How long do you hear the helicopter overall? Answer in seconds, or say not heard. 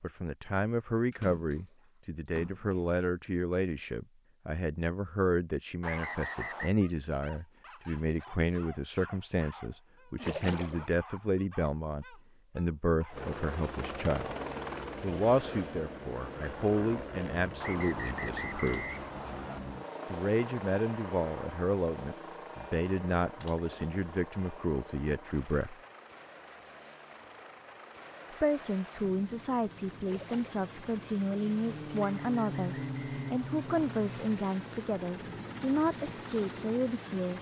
24 s.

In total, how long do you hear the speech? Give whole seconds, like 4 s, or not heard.
33 s.